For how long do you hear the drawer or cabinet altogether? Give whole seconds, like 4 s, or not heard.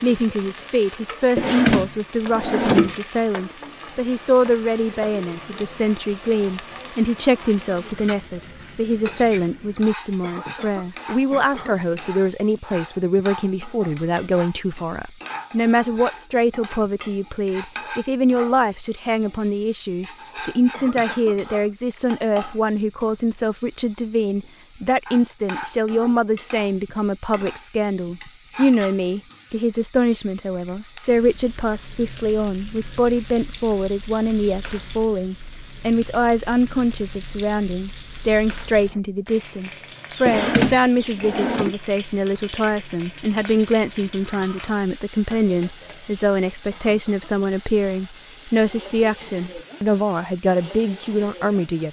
3 s.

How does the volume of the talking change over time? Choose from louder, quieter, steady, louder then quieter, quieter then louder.
steady.